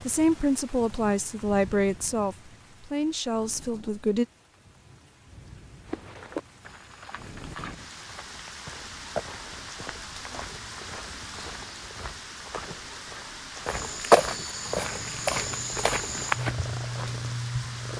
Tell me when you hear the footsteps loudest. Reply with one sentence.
The loudest moment of the footsteps is at 14 seconds.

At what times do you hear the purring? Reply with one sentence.
You can hear the purring from 14.7 to 17.9 s.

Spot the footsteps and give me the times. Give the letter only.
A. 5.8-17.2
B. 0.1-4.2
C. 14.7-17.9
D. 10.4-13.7
A.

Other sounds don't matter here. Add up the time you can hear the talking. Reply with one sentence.
You can hear the talking for 4 seconds altogether.